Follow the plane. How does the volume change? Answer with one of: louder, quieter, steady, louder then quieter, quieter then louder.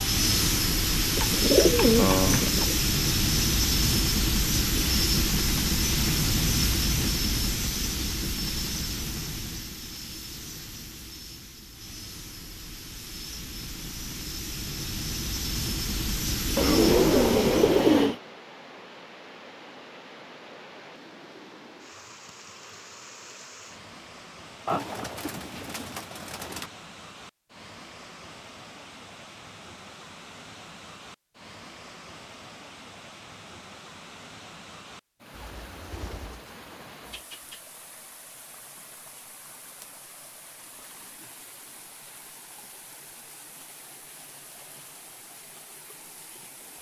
quieter then louder.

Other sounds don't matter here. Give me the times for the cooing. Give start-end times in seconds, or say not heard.
1.1-2.8, 16.6-18.2, 24.6-26.7, 35.3-37.6.